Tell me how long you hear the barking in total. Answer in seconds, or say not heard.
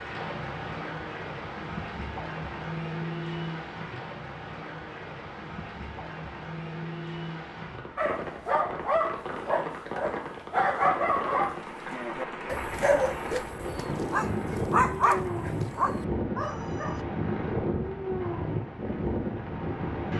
9 s.